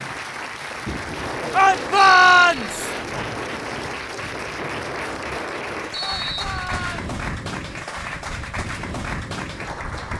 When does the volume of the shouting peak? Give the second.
2 s.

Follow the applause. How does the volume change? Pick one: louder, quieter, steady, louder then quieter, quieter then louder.
steady.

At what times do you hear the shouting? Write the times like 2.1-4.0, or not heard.
1.5-2.9, 6.0-7.0.